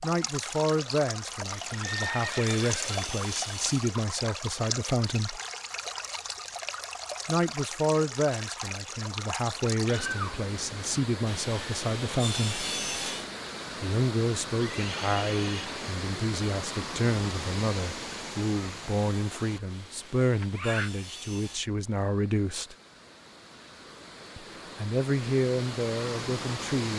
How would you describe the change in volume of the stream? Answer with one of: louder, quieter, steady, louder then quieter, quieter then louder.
quieter.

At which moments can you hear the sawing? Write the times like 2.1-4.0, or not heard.
1.5-3.9, 11.2-13.3, 19.7-21.7.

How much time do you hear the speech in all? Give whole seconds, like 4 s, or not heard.
22 s.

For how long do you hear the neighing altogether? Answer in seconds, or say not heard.
3 s.